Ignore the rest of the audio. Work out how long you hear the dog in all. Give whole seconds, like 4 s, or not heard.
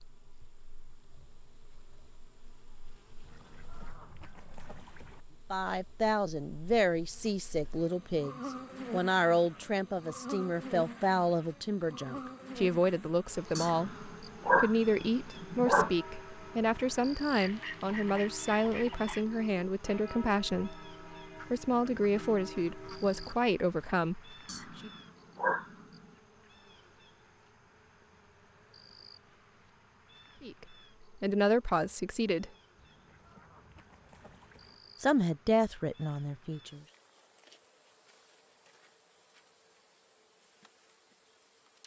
4 s.